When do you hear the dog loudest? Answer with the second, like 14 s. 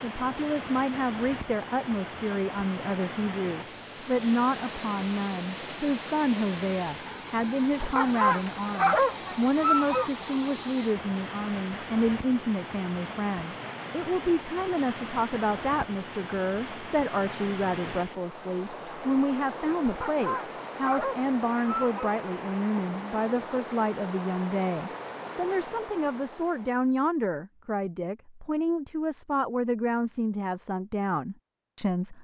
9 s.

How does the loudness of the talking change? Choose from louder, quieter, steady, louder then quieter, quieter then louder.
steady.